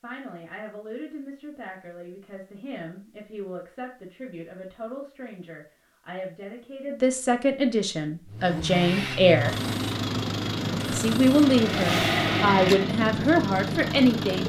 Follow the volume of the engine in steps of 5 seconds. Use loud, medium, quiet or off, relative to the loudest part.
off, loud, loud.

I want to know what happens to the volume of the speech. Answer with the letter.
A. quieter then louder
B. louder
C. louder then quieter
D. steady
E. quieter
B.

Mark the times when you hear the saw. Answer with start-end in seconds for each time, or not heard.
not heard.